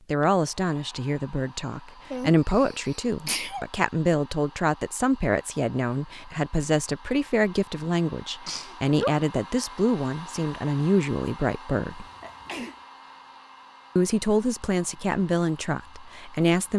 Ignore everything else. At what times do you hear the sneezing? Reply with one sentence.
The sneezing can be heard from 2.1 to 3.6 s, from 8.4 to 9.2 s and from 11.9 to 12.8 s.